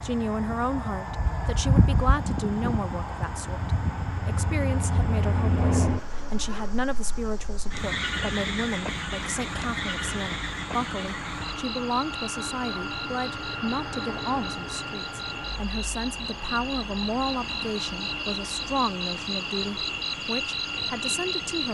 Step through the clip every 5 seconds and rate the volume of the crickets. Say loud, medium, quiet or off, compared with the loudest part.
loud, loud, medium, loud, loud.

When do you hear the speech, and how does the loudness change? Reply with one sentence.
You can hear the speech from 0.0 to 21.6 s, at a steady volume.